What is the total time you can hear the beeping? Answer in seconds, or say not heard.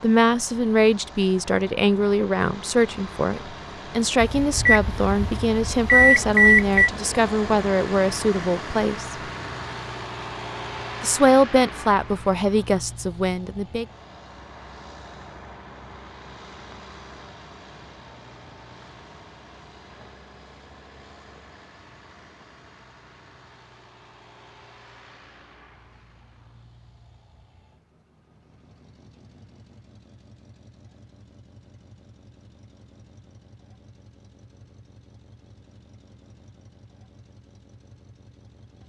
3 s.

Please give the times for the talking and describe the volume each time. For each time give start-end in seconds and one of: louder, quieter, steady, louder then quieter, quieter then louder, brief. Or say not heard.
0.0-9.2 steady
11.0-13.8 brief.